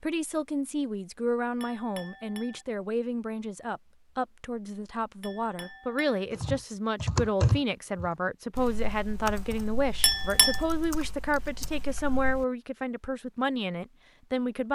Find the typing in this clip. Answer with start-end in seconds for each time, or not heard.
6.3-12.4.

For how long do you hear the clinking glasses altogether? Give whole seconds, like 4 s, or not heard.
3 s.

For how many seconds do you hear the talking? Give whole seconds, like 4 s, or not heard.
15 s.